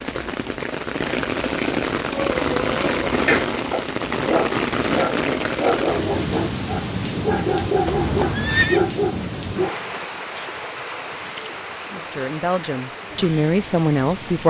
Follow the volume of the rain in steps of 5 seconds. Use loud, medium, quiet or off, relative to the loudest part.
loud, loud, medium.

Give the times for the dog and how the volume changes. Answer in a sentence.
The dog can be heard from 2.0 to 9.8 s, at a steady volume.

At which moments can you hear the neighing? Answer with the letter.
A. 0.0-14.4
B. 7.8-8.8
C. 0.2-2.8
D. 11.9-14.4
B.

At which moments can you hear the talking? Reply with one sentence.
You can hear the talking from 11.9 to 14.4 s.